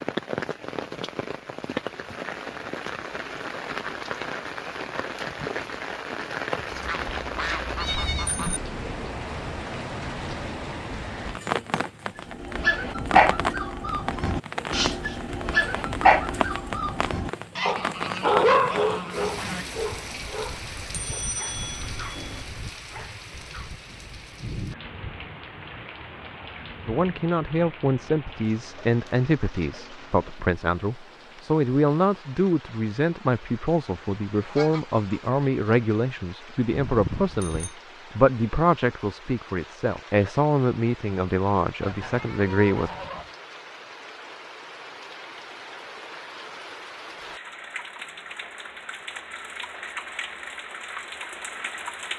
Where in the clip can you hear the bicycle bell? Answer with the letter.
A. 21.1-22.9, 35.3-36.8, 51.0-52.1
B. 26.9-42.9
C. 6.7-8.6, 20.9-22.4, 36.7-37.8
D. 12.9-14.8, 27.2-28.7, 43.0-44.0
C.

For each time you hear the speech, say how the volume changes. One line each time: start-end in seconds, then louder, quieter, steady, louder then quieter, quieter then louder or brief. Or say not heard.
26.9-42.9 steady.